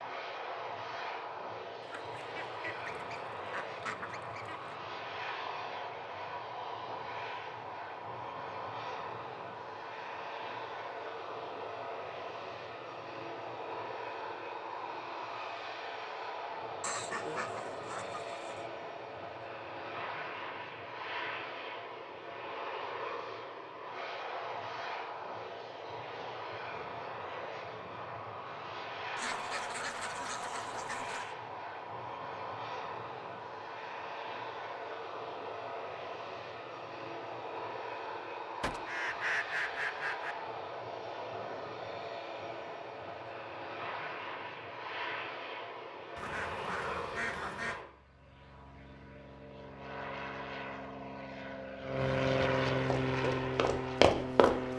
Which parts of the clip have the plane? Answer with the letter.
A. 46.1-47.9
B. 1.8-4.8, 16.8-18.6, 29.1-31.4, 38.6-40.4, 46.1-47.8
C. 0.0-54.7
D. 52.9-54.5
C.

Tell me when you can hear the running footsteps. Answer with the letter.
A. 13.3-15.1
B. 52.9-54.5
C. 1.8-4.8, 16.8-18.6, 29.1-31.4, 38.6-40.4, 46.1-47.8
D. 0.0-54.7
B.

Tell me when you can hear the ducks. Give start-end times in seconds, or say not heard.
1.8-4.8, 16.8-18.6, 29.1-31.4, 38.6-40.4, 46.1-47.8.